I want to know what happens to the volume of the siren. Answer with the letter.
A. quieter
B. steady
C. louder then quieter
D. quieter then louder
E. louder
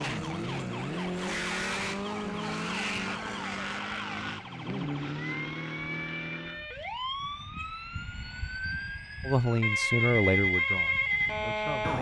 E.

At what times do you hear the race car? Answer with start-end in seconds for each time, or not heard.
0.0-6.7.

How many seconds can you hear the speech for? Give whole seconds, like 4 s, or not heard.
3 s.